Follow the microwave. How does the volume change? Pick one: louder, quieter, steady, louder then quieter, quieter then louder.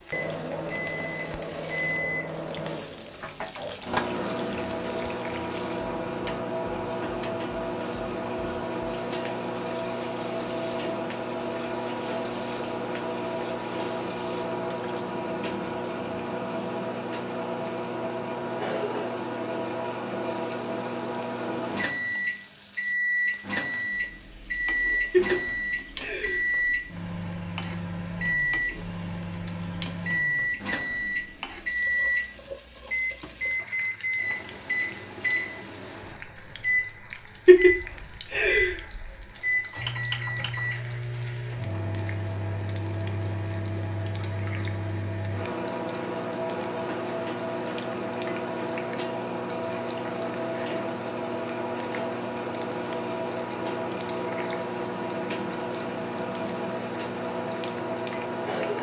steady.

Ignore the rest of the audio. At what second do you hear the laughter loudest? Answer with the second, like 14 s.
38 s.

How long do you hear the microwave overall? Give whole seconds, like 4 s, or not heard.
59 s.